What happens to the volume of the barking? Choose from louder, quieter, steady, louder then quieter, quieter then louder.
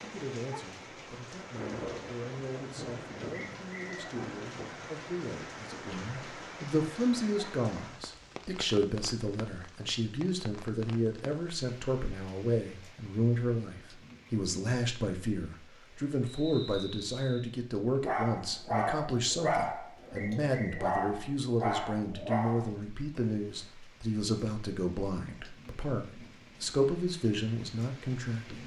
quieter then louder.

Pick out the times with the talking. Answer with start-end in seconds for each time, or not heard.
0.0-28.6.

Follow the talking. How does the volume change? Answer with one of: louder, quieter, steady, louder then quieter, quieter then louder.
louder.